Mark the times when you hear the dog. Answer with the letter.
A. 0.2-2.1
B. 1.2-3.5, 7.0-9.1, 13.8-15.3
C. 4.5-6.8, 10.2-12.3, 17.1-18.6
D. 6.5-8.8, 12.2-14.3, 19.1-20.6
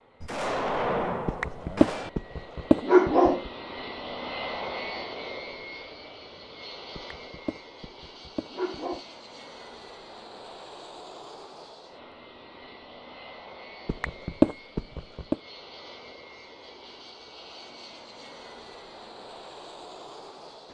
B.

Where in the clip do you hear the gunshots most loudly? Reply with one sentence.
The volume of the gunshots peaks at 1 second.